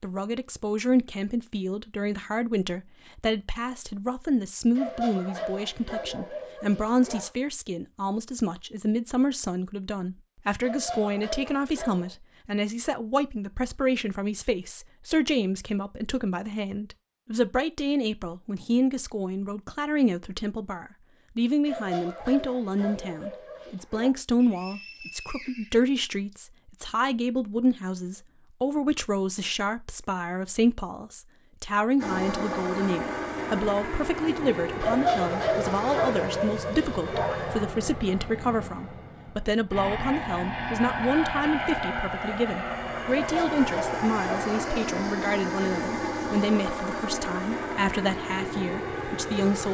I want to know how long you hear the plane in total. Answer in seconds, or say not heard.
18 s.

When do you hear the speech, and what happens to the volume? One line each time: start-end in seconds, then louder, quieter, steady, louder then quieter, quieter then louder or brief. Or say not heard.
0.0-49.6 steady.